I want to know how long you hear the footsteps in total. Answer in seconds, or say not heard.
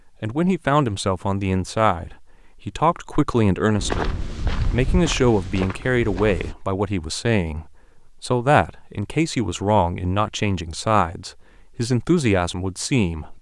3 s.